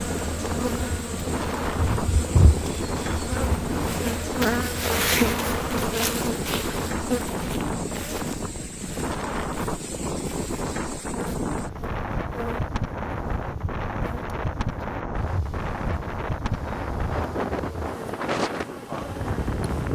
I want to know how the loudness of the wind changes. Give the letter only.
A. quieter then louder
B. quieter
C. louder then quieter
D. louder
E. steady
E.